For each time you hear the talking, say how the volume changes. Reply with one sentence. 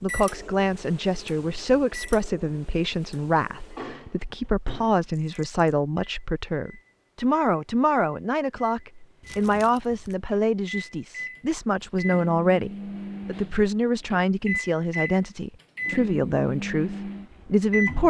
You can hear the talking from 0.0 to 18.0 s, at a steady volume.